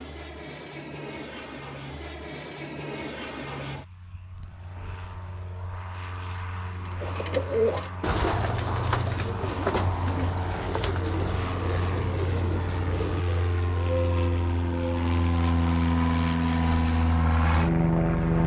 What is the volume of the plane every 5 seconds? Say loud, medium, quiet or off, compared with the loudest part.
quiet, quiet, medium, loud.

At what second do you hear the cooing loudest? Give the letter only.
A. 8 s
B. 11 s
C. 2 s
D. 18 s
A.